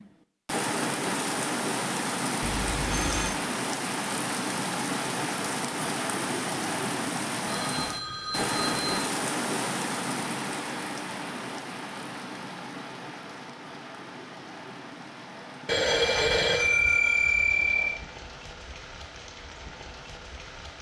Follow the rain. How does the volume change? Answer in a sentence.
The volume of the rain goes down.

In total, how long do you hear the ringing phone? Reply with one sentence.
You can hear the ringing phone for 5 seconds altogether.